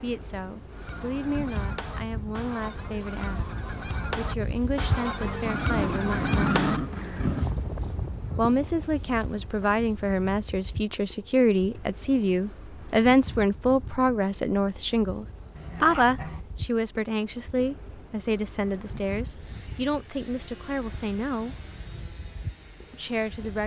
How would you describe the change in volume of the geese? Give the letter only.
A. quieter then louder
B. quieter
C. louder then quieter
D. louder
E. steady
C.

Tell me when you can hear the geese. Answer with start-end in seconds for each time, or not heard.
0.7-9.7.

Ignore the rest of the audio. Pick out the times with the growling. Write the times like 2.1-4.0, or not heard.
5.5-7.5, 15.6-16.4.